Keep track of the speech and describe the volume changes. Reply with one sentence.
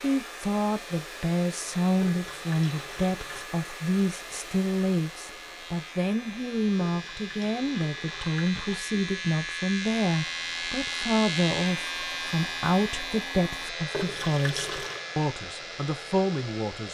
The volume of the speech stays about the same.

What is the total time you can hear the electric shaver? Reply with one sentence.
You can hear the electric shaver for 17 seconds altogether.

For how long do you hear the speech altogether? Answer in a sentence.
You can hear the speech for 17 seconds altogether.